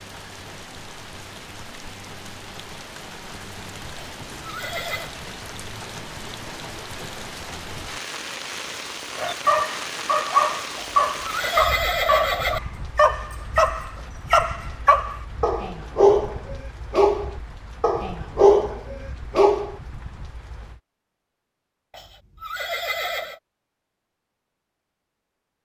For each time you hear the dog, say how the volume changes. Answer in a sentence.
The dog can be heard from 9.2 to 19.8 s, at a steady volume.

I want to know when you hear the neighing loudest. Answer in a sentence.
The loudest moment of the neighing is at 12 seconds.